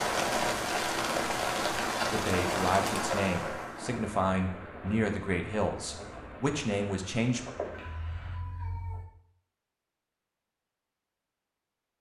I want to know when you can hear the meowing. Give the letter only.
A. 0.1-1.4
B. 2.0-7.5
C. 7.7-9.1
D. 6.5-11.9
C.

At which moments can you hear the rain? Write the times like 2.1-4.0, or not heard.
0.0-8.3.